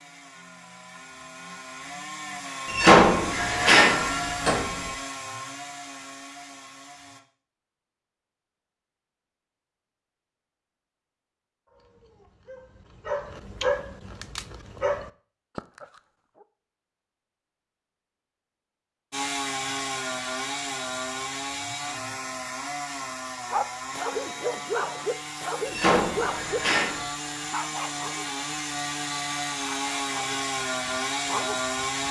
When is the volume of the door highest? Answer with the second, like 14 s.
3 s.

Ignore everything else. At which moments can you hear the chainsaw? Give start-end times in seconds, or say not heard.
0.0-7.2, 19.1-32.0.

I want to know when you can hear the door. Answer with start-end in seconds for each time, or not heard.
2.6-4.7, 25.6-27.1.